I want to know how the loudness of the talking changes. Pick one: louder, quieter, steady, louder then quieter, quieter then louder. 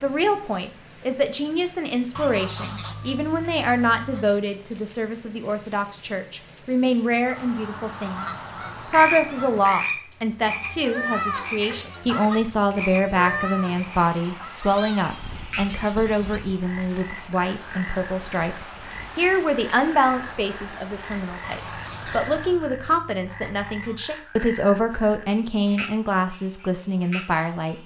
steady.